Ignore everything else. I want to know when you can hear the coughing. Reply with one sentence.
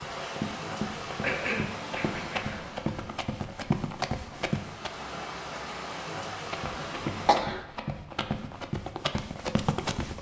You can hear the coughing from 1.2 to 2.7 s and from 7.2 to 7.7 s.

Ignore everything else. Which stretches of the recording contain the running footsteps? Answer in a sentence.
You can hear the running footsteps from 0.0 to 4.9 s and from 6.3 to 10.1 s.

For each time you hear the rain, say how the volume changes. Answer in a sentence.
The rain can be heard from 0.0 to 7.3 s, getting quieter then louder.